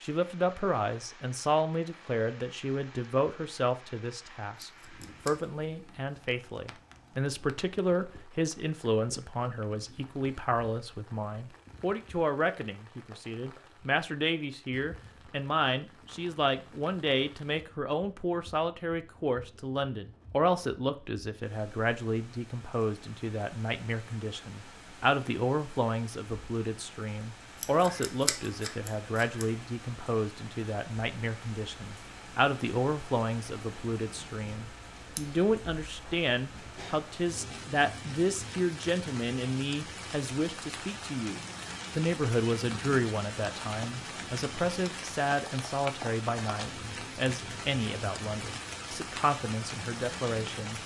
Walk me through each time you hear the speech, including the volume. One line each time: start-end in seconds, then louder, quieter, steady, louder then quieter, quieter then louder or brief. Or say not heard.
0.0-50.8 steady.